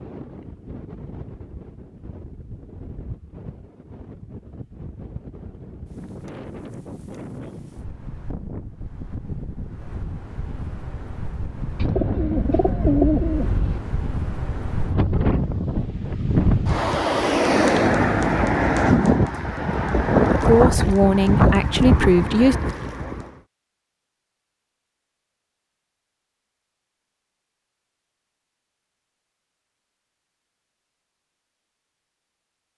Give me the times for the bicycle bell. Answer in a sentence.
You can't hear the bicycle bell here.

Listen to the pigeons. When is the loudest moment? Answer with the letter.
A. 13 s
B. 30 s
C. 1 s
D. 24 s
A.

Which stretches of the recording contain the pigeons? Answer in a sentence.
You can hear the pigeons from 11.8 to 13.8 s.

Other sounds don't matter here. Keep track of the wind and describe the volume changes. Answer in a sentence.
The loudness of the wind goes up.